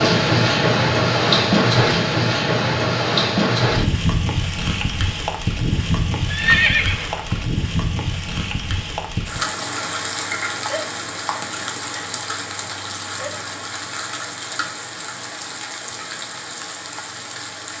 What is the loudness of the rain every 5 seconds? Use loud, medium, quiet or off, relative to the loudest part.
loud, medium, medium, quiet.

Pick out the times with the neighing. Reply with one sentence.
The neighing can be heard from 6.3 to 7.4 s.